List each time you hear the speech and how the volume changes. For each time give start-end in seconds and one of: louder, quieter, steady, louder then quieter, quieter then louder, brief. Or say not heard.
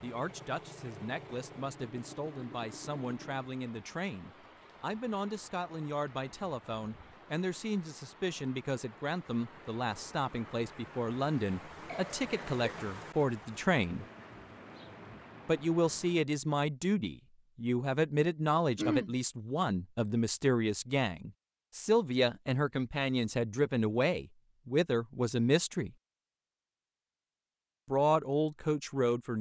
0.0-14.1 louder
15.4-25.9 steady
27.9-29.3 brief.